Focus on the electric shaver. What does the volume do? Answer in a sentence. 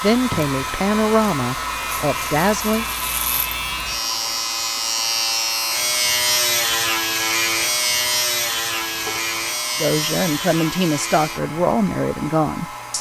The volume of the electric shaver goes up, then down.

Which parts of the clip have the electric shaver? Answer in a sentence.
You can hear the electric shaver from 0.0 to 12.9 s.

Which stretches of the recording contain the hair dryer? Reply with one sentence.
You can hear the hair dryer from 0.0 to 12.9 s.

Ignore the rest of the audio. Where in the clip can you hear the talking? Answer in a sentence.
You can hear the talking from 0.0 to 2.9 s and from 9.8 to 12.9 s.